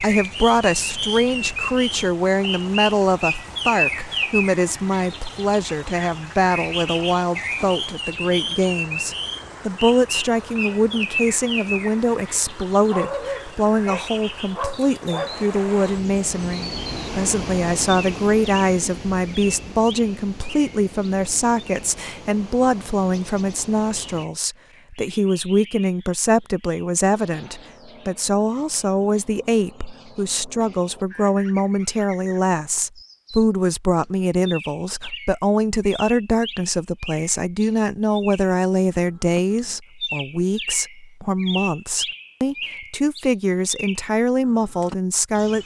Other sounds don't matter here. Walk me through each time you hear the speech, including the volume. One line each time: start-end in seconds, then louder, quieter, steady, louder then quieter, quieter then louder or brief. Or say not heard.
0.0-45.6 steady.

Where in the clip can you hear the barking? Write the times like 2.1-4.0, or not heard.
12.9-15.3.